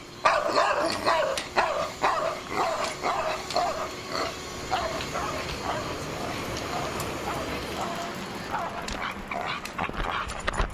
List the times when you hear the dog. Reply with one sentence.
The dog can be heard from 0.2 to 10.6 s.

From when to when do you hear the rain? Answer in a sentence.
You can hear the rain from 0.0 to 10.6 s.